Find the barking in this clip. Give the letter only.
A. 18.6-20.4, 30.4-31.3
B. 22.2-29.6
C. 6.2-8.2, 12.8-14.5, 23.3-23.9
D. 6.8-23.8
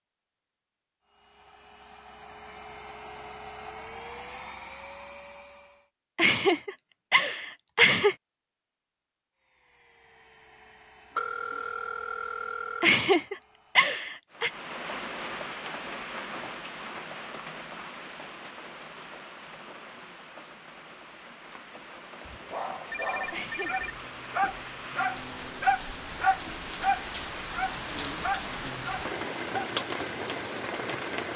B.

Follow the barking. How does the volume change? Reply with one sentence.
The volume of the barking goes up, then down.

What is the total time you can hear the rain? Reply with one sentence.
You can hear the rain for 17 seconds altogether.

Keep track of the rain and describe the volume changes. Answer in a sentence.
The loudness of the rain goes down, then up.